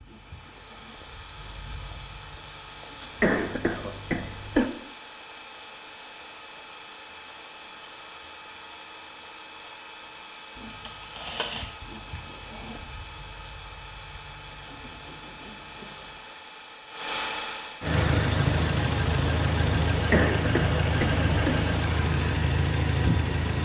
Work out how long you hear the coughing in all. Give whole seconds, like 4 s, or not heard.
3 s.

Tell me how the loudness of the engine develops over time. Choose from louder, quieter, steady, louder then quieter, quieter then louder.
louder.